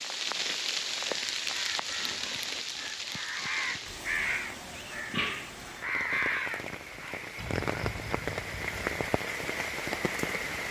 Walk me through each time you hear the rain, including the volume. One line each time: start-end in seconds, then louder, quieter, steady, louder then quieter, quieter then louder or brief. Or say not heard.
0.0-10.6 quieter then louder.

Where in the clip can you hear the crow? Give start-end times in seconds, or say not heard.
1.1-9.1.